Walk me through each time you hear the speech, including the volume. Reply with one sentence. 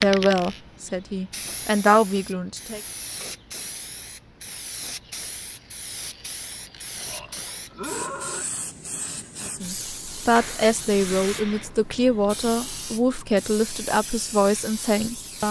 The speech can be heard briefly from 0.0 to 2.8 s; and from 9.4 to 15.4 s, at a steady volume.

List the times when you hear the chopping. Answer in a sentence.
You can't hear the chopping here.